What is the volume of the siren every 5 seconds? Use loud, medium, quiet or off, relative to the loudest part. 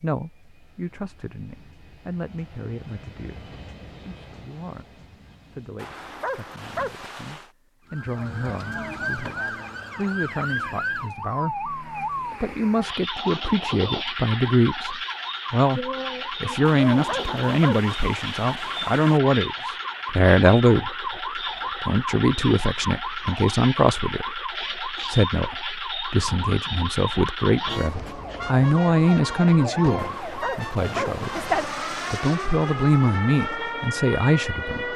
off, loud, loud, loud, loud, loud, loud.